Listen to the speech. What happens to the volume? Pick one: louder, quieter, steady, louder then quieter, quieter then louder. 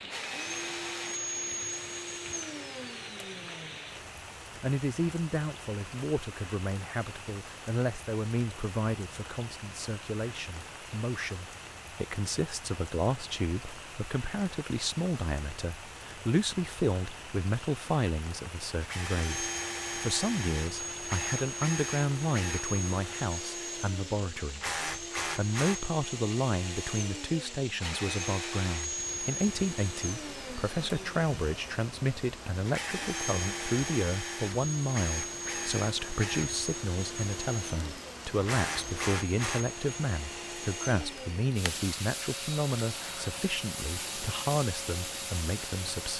steady.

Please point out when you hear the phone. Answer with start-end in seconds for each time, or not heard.
not heard.